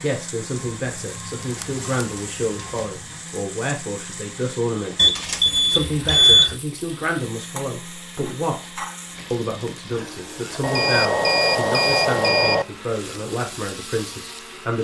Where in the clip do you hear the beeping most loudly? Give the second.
6 s.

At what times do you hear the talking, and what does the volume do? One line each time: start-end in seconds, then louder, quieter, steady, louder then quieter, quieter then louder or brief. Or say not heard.
0.0-14.7 steady.